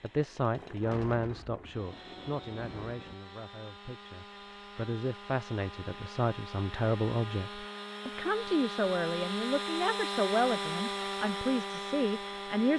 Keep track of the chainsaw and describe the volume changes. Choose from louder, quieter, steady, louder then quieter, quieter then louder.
louder.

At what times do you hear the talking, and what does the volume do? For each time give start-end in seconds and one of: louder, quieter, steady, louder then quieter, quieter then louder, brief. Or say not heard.
0.0-12.7 quieter then louder.